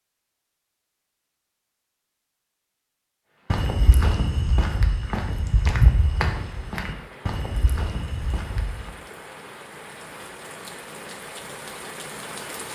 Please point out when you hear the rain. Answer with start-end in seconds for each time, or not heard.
3.2-12.6.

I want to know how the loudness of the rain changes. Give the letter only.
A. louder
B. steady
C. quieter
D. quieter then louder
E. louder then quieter
A.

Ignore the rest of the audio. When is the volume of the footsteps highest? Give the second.
6 s.